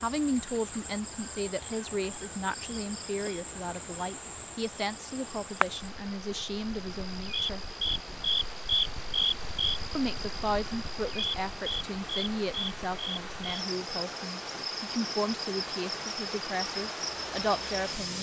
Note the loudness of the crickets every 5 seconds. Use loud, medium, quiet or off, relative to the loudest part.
medium, loud, medium, medium.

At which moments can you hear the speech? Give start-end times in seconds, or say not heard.
0.0-7.6, 9.9-18.1.